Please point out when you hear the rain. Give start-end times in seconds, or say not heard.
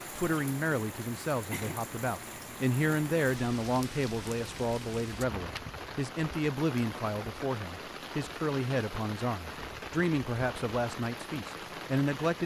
0.0-12.4.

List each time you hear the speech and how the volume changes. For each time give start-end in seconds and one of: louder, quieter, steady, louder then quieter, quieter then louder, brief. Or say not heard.
0.1-12.4 steady.